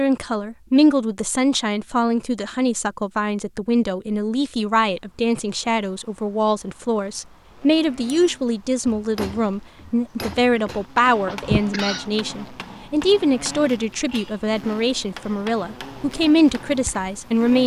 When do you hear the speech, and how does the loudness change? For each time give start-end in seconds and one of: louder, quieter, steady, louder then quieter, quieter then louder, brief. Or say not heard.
0.0-17.6 steady.